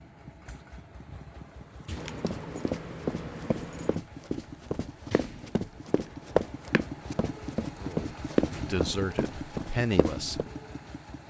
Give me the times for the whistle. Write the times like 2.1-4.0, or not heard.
not heard.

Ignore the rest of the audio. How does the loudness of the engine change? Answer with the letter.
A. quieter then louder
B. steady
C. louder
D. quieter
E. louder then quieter
C.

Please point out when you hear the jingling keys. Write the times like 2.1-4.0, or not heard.
1.9-4.0, 5.8-6.7.